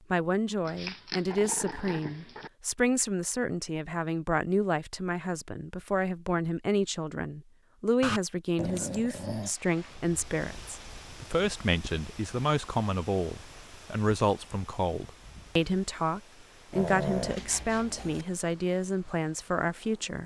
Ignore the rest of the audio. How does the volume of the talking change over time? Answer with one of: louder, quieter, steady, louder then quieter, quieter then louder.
steady.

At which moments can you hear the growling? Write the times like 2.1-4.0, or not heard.
0.7-2.5, 8.0-9.6, 16.7-18.2.